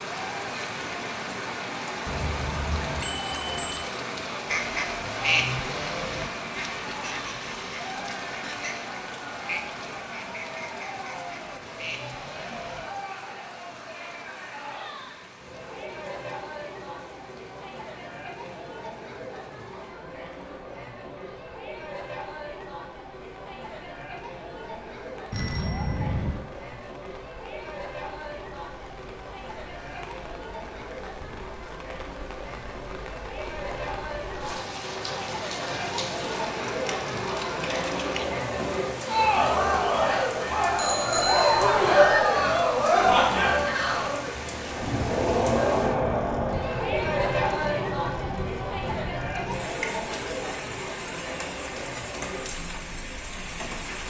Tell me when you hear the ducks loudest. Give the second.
5 s.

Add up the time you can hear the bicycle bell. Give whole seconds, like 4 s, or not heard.
4 s.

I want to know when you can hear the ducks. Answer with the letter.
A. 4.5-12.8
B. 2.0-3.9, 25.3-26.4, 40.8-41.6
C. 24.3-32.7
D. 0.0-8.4
A.